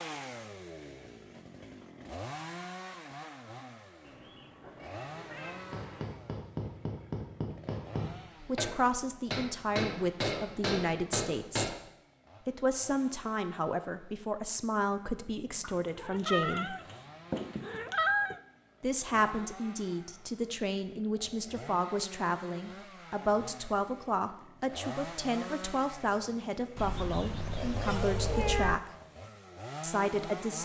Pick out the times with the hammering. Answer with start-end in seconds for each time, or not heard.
5.5-11.8.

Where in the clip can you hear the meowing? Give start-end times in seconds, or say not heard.
4.0-6.0, 15.6-18.4, 26.8-28.8.